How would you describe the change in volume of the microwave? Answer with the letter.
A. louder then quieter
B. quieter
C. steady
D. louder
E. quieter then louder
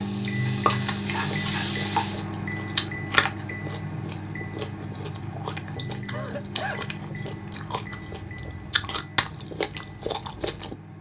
B.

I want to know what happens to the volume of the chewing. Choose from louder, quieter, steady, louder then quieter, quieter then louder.
quieter then louder.